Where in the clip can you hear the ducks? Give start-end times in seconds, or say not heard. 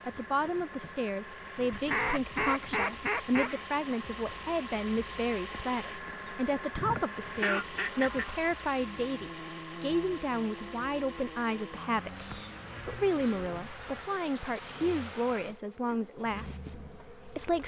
1.7-3.6, 6.8-8.3, 12.1-14.1.